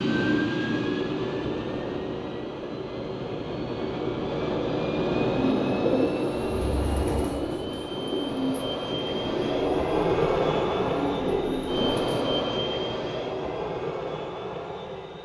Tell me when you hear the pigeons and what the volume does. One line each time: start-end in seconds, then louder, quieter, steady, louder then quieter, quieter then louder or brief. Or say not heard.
5.3-12.3 steady.